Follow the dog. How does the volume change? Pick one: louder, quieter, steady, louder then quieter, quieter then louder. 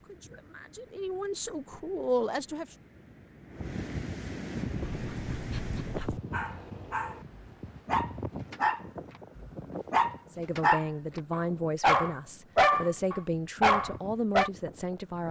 louder.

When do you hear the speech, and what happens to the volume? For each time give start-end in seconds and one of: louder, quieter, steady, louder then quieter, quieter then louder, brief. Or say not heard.
0.0-2.8 brief
10.3-15.2 steady.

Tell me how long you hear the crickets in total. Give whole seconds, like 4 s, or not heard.
not heard.